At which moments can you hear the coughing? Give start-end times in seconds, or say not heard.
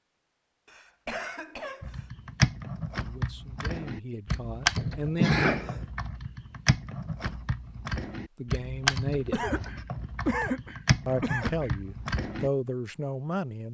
0.7-2.1, 4.8-5.8, 9.3-11.8.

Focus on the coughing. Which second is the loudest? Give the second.
5 s.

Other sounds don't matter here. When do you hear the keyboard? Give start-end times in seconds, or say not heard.
1.8-12.5.